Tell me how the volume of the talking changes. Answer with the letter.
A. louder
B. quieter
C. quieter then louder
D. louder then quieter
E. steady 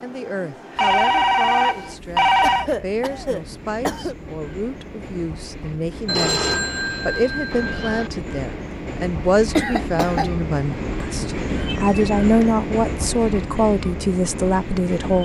A.